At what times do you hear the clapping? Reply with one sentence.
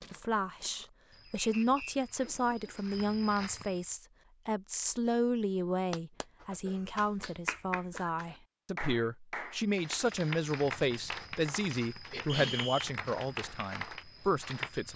The clapping can be heard from 5.9 to 14.7 s.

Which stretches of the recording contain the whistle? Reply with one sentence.
The whistle can be heard from 1.4 to 1.9 s and from 12.2 to 12.9 s.